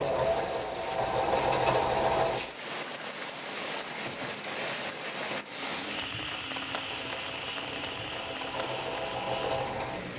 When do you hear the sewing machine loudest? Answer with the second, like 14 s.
2 s.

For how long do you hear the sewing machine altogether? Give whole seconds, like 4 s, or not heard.
6 s.